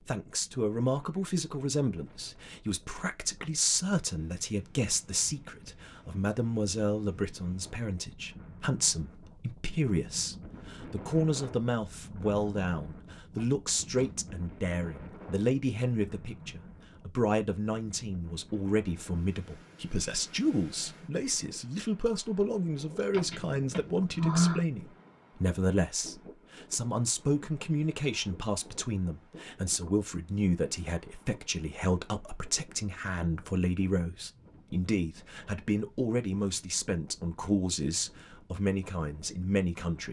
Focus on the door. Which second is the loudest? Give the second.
24 s.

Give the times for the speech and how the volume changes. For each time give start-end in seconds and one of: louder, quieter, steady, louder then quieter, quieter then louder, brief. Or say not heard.
0.0-40.0 steady.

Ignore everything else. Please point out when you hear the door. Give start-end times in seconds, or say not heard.
13.3-14.2, 23.1-24.6.